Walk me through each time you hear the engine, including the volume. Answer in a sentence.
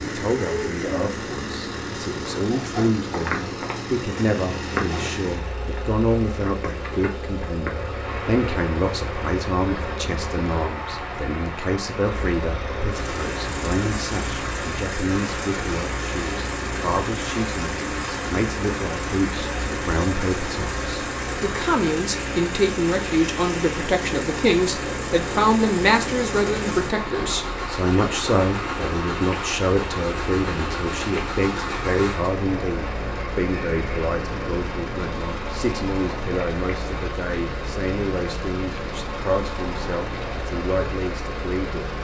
You can hear the engine from 0.0 to 41.9 s, at a steady volume.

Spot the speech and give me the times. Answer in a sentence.
The speech can be heard from 0.0 to 41.9 s.